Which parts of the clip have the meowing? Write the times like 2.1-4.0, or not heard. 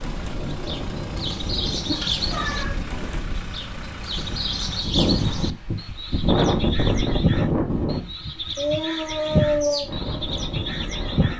1.9-2.8, 8.6-9.9.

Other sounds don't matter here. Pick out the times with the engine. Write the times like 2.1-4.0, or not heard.
0.0-4.8.